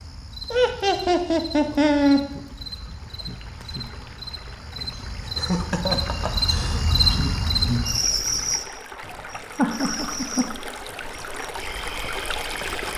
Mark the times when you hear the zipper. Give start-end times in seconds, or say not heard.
not heard.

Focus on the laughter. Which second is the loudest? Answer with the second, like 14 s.
2 s.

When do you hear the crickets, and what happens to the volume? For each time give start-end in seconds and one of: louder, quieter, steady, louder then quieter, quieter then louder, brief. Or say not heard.
0.0-12.9 louder then quieter.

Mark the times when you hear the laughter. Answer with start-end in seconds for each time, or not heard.
0.5-2.2, 5.3-6.8, 9.6-10.4.